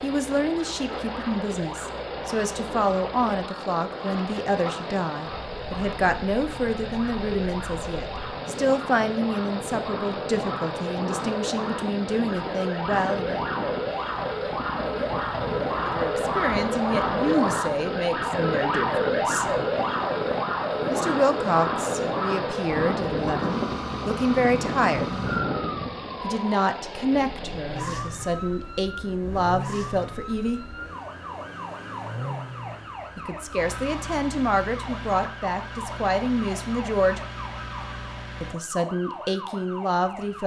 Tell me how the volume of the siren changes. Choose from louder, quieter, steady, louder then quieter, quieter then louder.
louder then quieter.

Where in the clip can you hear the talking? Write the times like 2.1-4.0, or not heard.
0.0-13.4, 15.7-19.4, 20.9-25.1, 26.2-30.6, 33.1-37.2, 38.4-40.4.